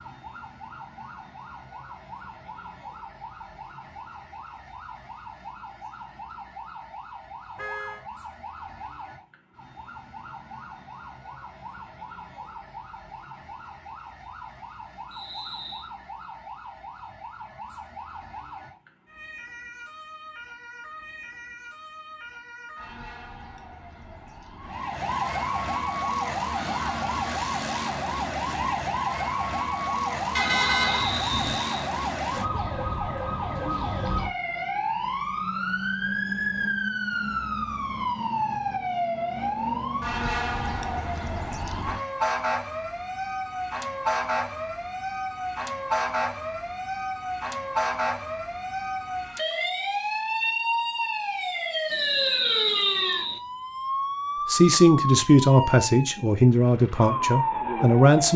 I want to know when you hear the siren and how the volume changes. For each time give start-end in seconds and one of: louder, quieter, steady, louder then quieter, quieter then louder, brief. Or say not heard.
0.0-58.3 louder.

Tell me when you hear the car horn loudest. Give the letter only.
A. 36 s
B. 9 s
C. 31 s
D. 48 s
C.